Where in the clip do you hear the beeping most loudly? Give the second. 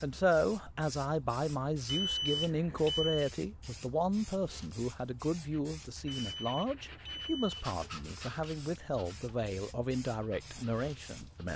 2 s.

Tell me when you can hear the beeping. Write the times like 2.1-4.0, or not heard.
1.9-3.3, 6.2-7.7.